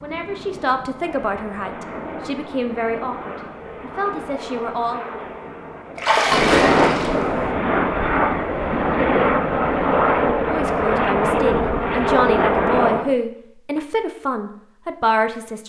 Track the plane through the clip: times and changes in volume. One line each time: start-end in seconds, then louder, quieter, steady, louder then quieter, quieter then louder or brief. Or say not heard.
0.0-13.2 louder.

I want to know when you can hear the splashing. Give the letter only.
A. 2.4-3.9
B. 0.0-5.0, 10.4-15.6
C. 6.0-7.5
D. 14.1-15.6
C.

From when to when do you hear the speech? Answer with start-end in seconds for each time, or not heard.
0.0-5.0, 10.4-15.6.